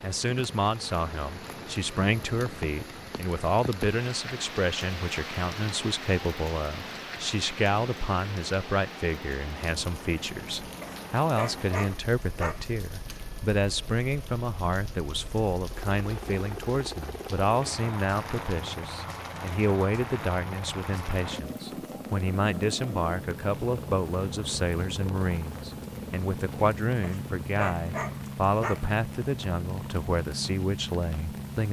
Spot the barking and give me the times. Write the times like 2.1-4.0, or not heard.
10.8-12.7, 27.0-28.9.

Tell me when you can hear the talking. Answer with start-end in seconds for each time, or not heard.
0.0-31.6.